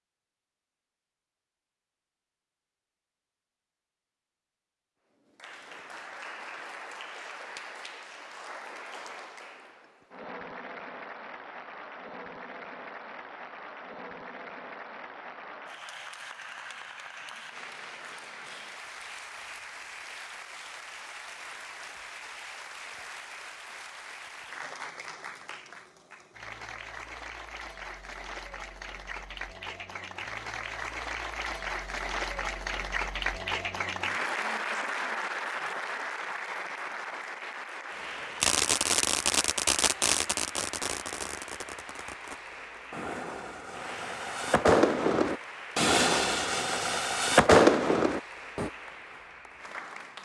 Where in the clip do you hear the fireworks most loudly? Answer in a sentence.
The loudest moment of the fireworks is at 48 seconds.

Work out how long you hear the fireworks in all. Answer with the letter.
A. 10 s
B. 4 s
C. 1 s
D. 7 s
A.